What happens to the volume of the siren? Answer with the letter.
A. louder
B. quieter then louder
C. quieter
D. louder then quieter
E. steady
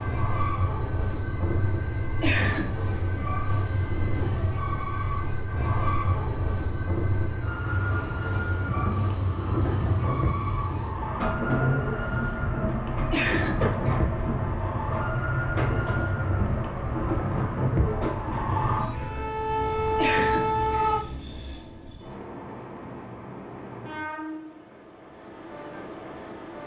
A.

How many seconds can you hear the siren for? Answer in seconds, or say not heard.
21 s.